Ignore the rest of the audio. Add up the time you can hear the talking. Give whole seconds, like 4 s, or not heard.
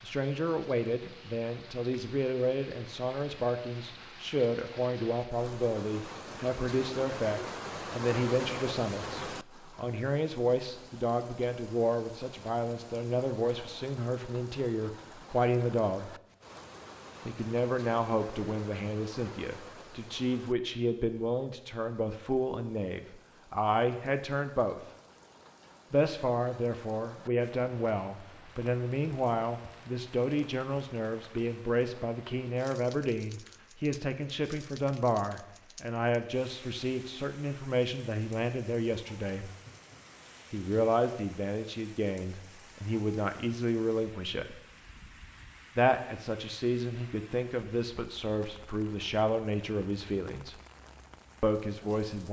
47 s.